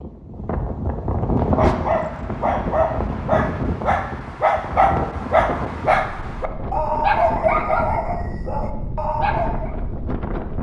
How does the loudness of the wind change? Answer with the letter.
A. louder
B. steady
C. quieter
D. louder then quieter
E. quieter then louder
C.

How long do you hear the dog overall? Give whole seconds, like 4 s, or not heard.
8 s.